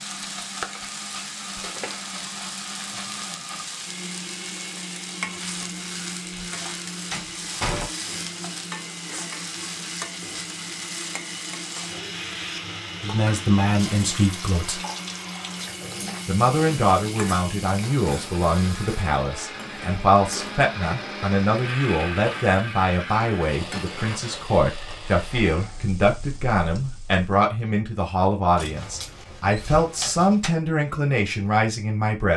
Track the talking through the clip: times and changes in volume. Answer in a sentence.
You can hear the talking briefly from 13.0 to 14.8 s; and from 16.2 to 32.3 s, at a steady volume.